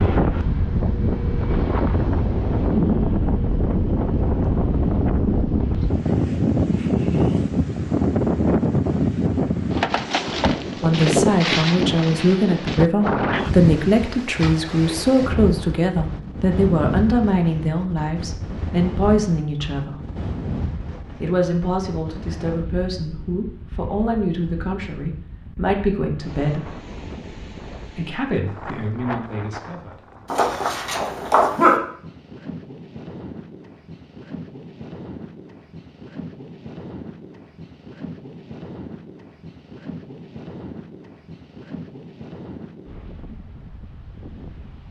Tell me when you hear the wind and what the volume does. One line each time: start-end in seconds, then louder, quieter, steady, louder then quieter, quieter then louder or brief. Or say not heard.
0.0-44.8 quieter.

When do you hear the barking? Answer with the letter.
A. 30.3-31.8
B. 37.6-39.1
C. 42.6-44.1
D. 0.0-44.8
A.